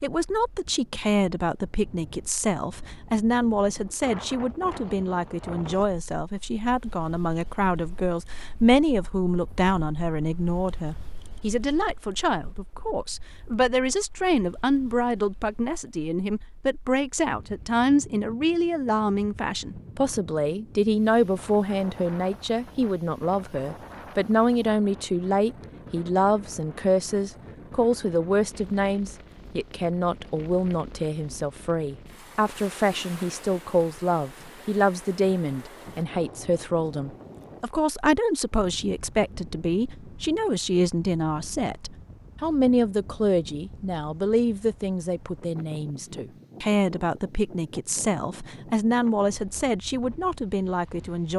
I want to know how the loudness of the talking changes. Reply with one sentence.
The volume of the talking stays about the same.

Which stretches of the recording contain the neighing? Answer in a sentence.
The neighing can't be heard in this clip.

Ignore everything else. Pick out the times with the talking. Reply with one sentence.
The talking can be heard from 0.0 to 51.3 s.